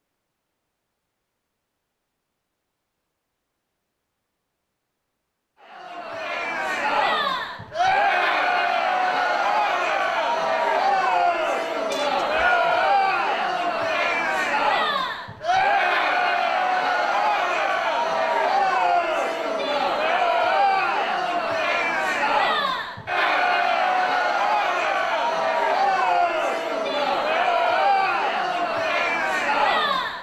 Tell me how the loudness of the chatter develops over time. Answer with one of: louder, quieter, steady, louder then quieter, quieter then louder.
steady.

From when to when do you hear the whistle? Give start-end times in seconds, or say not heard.
11.9-12.9.